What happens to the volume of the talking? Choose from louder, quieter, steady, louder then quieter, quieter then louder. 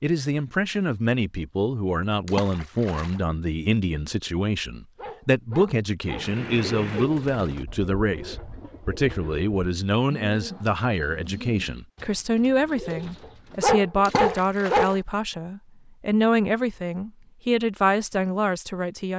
steady.